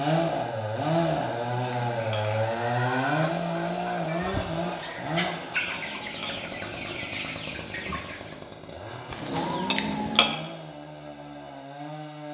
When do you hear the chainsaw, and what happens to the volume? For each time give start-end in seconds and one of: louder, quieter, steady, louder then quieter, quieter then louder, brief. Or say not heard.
0.0-12.2 quieter.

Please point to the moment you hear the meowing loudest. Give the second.
10 s.